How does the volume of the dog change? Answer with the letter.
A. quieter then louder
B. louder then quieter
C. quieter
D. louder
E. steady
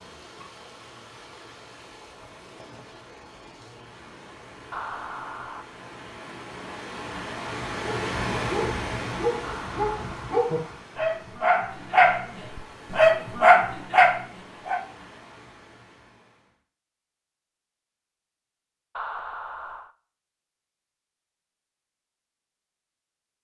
D.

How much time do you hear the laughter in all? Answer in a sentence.
You can hear the laughter for 3 seconds altogether.